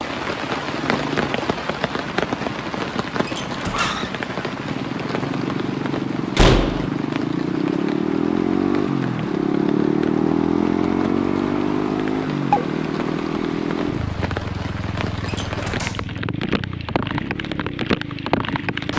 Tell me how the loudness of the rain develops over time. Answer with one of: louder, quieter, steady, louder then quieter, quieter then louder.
quieter then louder.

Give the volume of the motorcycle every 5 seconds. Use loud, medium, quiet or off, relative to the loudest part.
medium, loud, loud, medium.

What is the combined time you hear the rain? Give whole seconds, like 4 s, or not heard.
19 s.